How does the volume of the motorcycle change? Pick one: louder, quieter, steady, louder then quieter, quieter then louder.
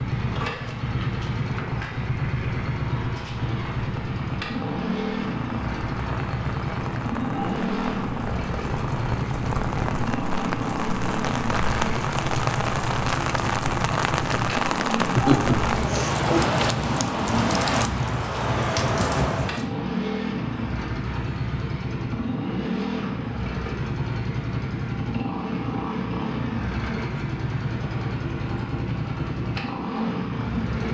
steady.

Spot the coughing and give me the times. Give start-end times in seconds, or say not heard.
15.2-16.4.